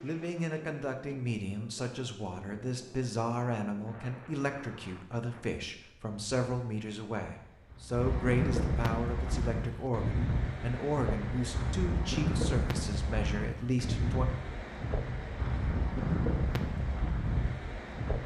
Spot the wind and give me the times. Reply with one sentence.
You can hear the wind from 0.0 to 18.2 s.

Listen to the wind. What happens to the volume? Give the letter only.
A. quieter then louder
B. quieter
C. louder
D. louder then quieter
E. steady
C.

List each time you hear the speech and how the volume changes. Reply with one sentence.
The speech can be heard from 0.0 to 14.2 s, at a steady volume.